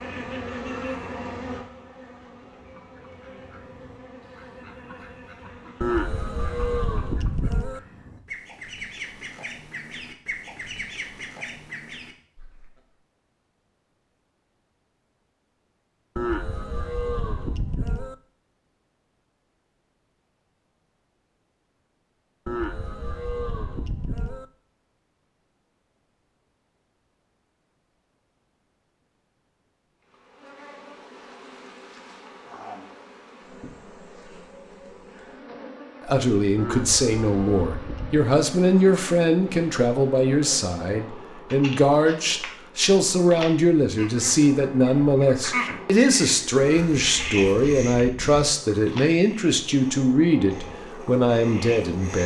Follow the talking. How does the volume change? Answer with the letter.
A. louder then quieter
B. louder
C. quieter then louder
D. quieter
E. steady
E.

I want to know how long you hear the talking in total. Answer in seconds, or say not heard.
16 s.